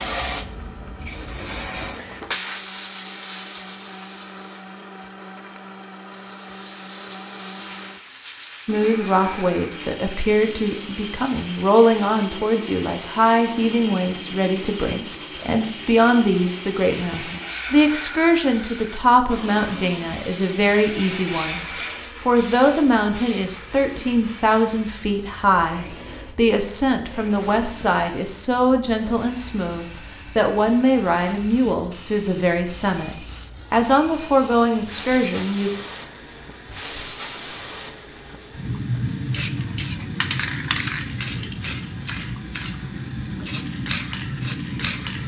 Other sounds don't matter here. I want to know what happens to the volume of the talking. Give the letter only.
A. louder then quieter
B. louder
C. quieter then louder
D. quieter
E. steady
E.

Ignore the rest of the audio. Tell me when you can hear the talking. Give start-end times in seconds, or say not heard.
8.7-35.7.